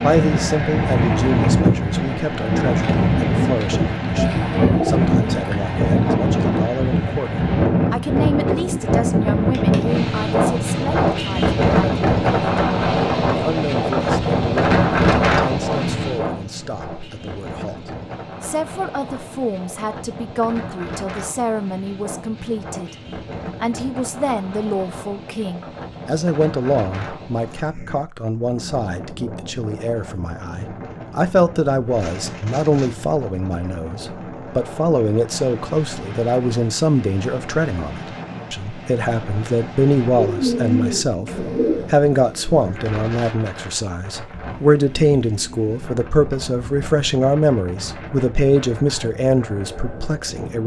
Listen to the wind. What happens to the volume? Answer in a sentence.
The loudness of the wind goes down.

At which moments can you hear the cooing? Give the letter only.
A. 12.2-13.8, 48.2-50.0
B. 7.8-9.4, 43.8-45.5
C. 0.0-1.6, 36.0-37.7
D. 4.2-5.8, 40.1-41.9
D.